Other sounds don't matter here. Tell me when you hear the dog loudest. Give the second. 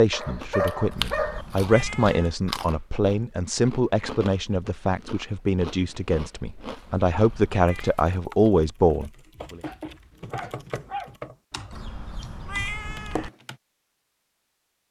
1 s.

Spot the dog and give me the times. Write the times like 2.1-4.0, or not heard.
0.1-1.4, 9.4-11.2.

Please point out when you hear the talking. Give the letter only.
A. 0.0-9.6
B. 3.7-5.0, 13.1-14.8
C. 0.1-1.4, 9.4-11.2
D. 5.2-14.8
A.